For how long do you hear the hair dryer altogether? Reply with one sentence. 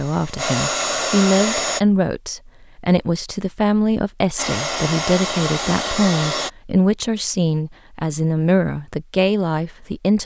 You can hear the hair dryer for 4 seconds altogether.